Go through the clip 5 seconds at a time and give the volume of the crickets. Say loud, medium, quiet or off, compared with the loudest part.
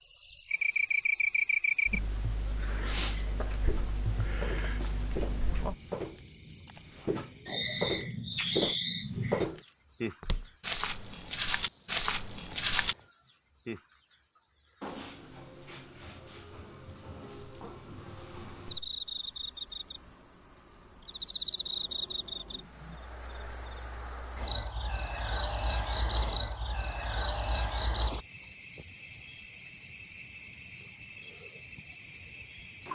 loud, loud, medium, medium, loud, loud, loud.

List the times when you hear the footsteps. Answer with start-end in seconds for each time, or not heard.
3.5-6.3, 6.9-12.9.